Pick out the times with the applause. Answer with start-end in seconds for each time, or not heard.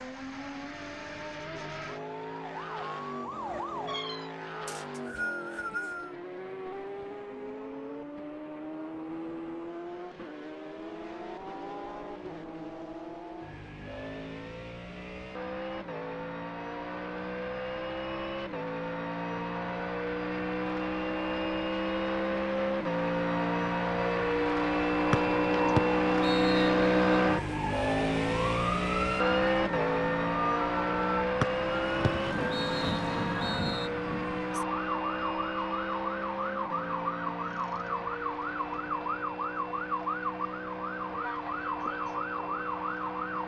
not heard.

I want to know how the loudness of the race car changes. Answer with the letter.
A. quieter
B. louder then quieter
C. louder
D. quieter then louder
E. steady
B.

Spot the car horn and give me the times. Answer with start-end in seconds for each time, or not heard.
not heard.